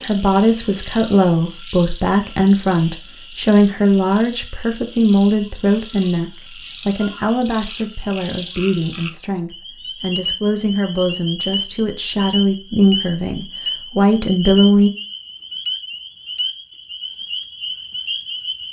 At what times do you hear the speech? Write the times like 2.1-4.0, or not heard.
0.0-14.9.